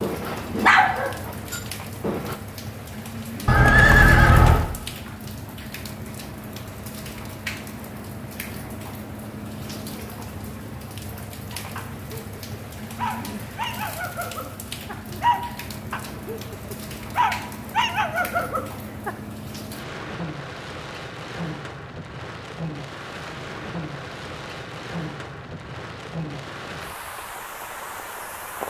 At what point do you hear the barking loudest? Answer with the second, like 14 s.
1 s.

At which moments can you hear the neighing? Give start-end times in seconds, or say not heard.
3.5-4.7.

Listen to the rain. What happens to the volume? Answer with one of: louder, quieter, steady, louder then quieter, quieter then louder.
steady.